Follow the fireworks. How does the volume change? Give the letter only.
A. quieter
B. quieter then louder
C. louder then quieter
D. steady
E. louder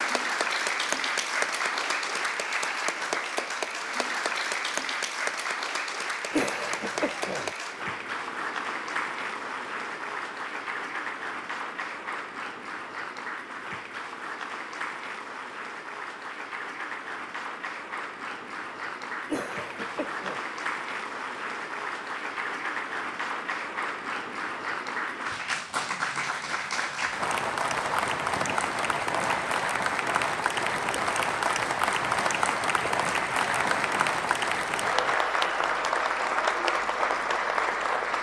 D.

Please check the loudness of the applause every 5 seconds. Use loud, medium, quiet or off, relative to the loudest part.
loud, medium, medium, medium, medium, loud, loud, loud.